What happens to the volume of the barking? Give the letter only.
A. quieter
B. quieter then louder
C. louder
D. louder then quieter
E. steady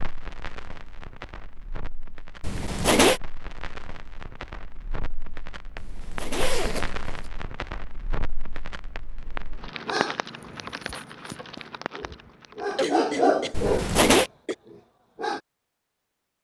D.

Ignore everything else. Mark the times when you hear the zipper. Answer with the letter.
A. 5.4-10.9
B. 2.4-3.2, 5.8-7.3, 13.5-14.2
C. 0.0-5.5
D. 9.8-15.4
B.